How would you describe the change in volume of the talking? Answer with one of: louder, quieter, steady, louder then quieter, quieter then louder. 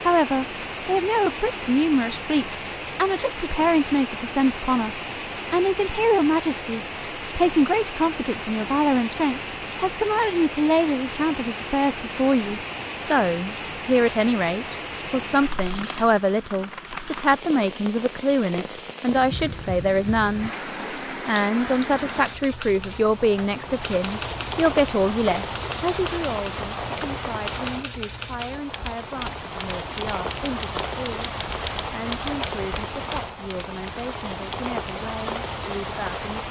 quieter.